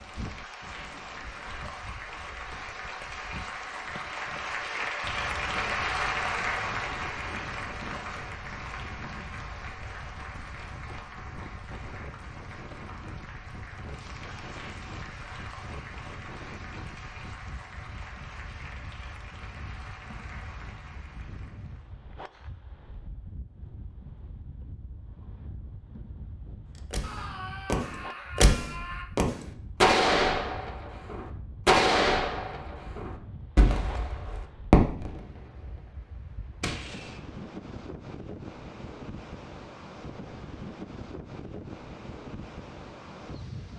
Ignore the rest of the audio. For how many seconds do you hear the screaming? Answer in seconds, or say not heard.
2 s.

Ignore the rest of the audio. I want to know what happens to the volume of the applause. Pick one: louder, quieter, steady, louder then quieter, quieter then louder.
louder then quieter.